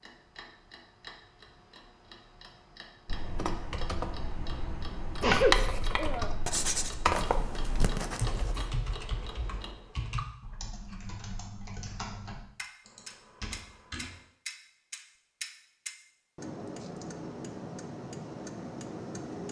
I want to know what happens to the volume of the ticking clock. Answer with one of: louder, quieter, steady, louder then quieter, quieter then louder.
louder.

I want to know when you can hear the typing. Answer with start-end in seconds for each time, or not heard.
3.0-14.2.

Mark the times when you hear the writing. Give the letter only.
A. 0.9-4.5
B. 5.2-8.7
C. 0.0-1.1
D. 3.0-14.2
B.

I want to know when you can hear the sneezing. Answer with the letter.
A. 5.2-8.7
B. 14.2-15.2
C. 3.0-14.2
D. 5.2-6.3
D.